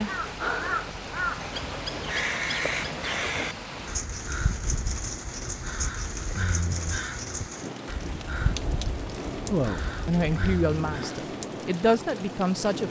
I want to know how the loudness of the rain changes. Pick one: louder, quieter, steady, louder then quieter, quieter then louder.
steady.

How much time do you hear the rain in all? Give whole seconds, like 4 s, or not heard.
13 s.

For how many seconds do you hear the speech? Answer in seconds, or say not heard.
3 s.